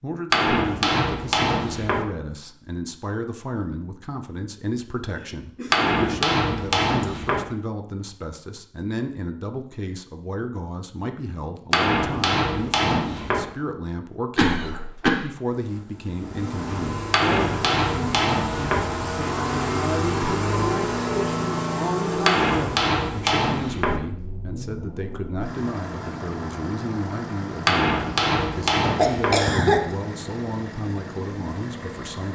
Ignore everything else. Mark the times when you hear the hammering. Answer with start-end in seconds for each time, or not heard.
0.3-2.0, 5.7-7.5, 11.7-13.4, 17.1-18.9, 22.2-24.0, 27.6-29.4.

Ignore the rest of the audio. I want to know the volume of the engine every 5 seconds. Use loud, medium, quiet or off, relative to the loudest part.
off, off, off, loud, loud, medium, medium.